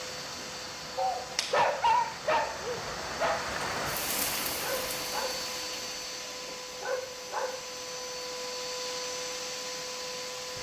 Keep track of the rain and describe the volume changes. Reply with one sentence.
The volume of the rain goes up, then down.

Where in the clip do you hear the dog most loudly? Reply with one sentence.
The loudest moment of the dog is at 2 seconds.